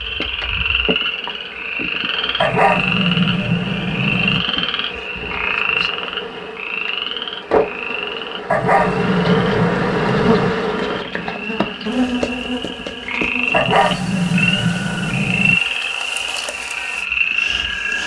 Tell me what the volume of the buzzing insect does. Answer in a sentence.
The volume of the buzzing insect goes up, then down.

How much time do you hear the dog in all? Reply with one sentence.
The dog can be heard for 6 seconds in total.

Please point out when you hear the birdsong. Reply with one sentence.
You can't hear the birdsong here.